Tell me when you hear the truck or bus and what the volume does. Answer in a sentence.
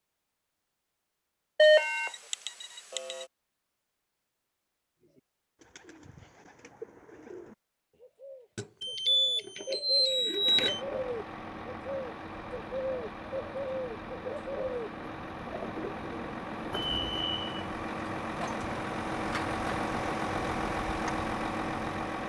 You can hear the truck or bus from 10.3 to 22.2 s, getting louder.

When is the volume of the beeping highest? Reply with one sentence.
The volume of the beeping peaks at 2 seconds.